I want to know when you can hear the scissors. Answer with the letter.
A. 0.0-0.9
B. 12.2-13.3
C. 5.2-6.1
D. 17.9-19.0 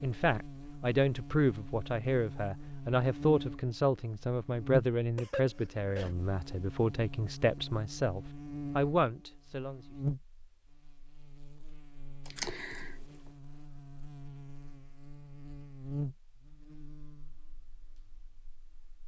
B.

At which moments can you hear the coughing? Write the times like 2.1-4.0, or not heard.
5.2-6.1.